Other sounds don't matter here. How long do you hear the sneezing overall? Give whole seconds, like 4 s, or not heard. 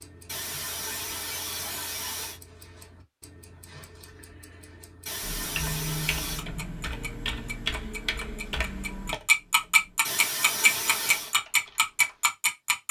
5 s.